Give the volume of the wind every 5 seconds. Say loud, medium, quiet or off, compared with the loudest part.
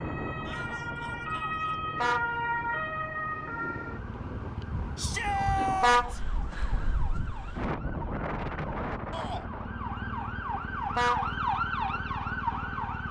medium, loud, off.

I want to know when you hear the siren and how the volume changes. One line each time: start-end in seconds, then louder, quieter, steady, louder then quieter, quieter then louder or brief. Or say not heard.
0.0-13.0 quieter then louder.